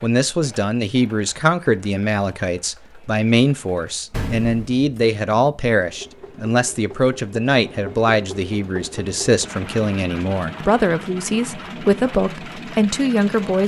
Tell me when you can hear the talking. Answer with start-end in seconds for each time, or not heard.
0.0-13.6.